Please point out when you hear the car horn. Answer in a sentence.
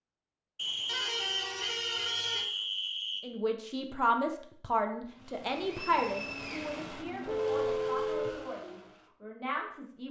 The car horn can be heard from 0.8 to 2.5 s and from 7.2 to 8.4 s.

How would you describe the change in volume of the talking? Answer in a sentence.
The loudness of the talking goes down.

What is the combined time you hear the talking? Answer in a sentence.
The talking can be heard for 7 seconds in total.